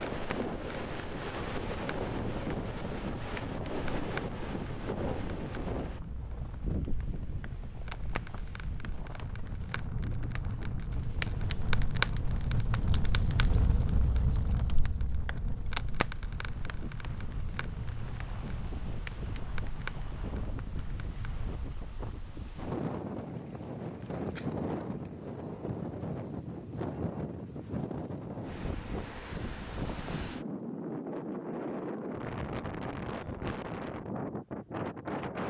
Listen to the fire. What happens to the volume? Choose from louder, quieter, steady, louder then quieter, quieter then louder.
louder then quieter.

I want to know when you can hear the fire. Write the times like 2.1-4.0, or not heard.
0.0-21.8.